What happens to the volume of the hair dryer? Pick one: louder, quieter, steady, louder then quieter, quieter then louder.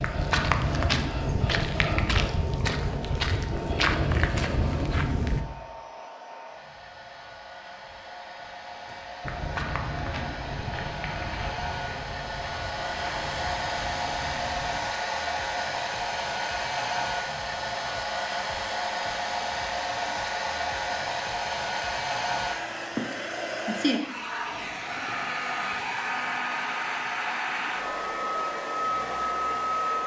louder.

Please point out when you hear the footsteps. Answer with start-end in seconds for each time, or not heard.
0.0-5.5, 8.8-14.8.